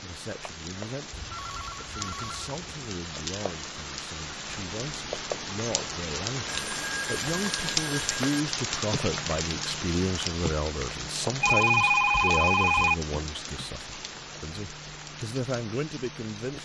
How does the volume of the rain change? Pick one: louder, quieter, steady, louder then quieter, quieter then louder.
louder then quieter.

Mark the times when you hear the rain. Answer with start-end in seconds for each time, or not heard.
0.0-16.6.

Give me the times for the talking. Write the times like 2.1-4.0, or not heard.
0.0-16.6.